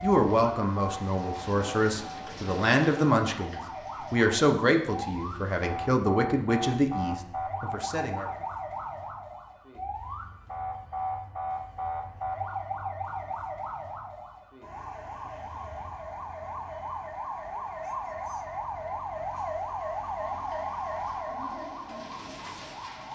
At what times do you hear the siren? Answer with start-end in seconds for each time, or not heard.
0.0-23.1.